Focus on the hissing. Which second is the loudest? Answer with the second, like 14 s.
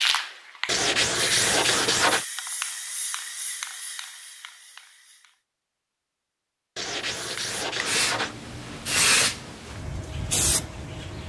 9 s.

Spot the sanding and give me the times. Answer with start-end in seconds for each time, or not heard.
0.7-2.2, 6.8-8.3.